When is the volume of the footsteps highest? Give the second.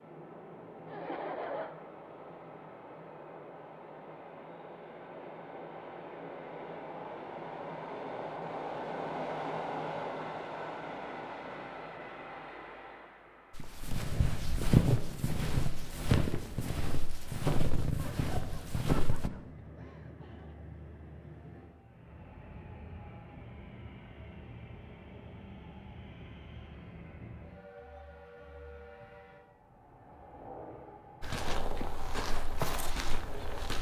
15 s.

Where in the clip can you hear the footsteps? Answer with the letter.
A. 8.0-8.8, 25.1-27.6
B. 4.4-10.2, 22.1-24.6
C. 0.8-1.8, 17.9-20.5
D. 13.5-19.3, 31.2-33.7
D.